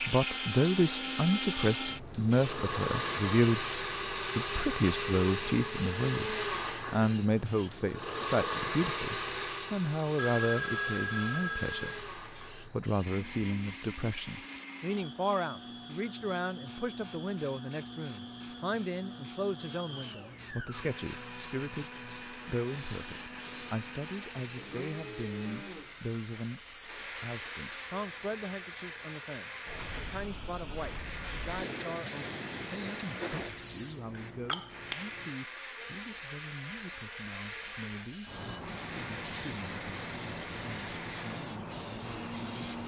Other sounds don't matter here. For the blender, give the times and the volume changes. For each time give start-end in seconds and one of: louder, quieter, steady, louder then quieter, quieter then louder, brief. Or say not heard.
0.0-42.8 quieter.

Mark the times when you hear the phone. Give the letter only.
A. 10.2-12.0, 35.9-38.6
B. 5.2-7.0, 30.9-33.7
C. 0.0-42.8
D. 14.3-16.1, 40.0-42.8
A.